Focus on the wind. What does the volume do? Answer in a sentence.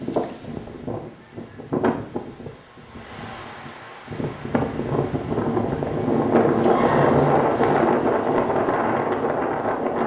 The volume of the wind goes down, then up.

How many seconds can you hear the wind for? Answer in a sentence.
You can hear the wind for 10 seconds altogether.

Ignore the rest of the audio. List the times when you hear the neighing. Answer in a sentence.
You can hear the neighing from 6.5 to 7.8 s.